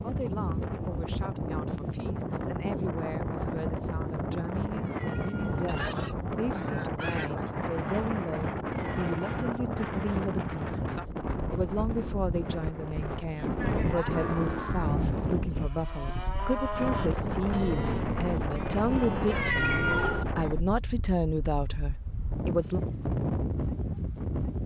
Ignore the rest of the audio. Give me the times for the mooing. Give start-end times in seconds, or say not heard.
13.6-20.0.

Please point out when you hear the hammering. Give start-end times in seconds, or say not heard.
not heard.